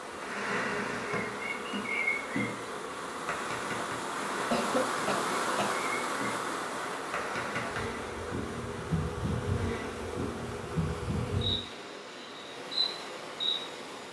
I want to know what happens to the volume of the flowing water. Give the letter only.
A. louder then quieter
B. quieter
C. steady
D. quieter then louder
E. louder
A.